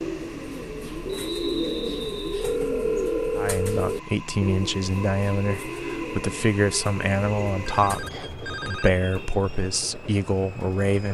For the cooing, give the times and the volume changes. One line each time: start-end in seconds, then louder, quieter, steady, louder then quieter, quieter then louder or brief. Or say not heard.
0.0-8.1 quieter.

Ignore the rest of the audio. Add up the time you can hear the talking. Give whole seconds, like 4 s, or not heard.
8 s.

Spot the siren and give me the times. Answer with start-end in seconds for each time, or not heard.
not heard.